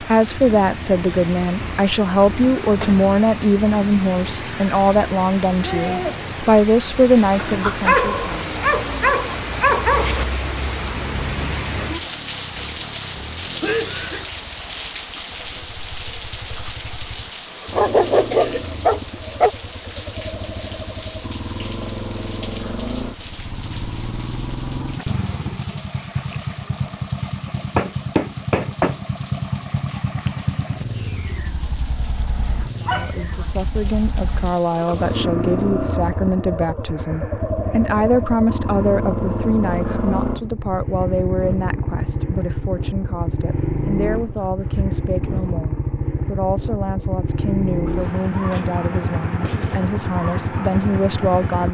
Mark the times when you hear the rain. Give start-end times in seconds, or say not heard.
0.0-35.2.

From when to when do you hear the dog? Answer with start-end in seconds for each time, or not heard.
7.8-10.2, 17.7-19.5, 32.6-33.5, 44.2-45.5.